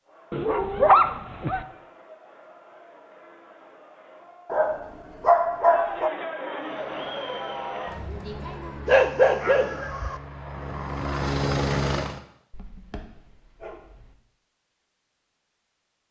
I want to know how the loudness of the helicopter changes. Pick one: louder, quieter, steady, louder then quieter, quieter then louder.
louder.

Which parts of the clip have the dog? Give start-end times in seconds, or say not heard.
0.3-1.6, 4.5-6.1, 8.8-10.2, 12.5-14.1.